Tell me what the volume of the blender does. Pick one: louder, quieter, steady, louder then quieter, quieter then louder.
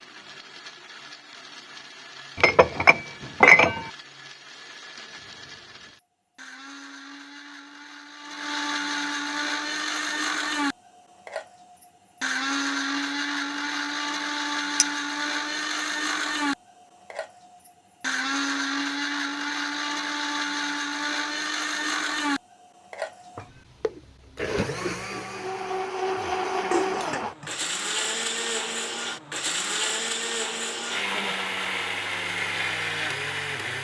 louder.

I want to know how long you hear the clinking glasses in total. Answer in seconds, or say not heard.
2 s.